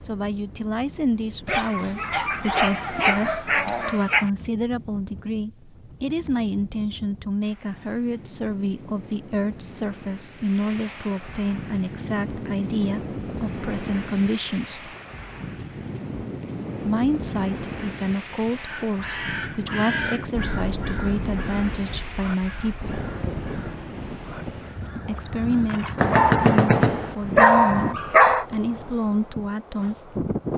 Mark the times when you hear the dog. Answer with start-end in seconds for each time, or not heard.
1.4-4.3, 25.9-28.4.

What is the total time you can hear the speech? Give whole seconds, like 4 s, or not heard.
26 s.